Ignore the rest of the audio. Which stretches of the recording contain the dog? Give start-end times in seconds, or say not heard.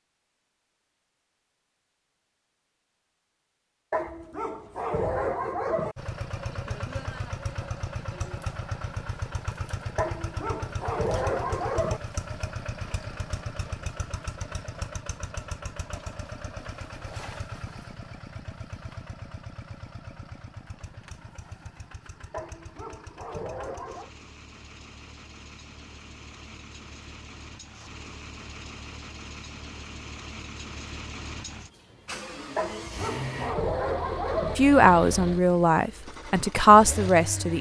3.9-6.0, 9.9-12.0, 22.3-24.1, 32.5-34.5.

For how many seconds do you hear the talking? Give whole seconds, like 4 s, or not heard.
3 s.